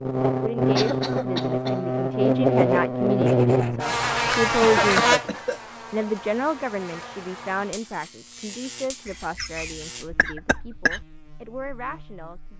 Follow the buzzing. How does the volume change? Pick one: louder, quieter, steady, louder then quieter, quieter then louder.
quieter.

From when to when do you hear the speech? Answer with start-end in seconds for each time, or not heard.
0.4-12.5.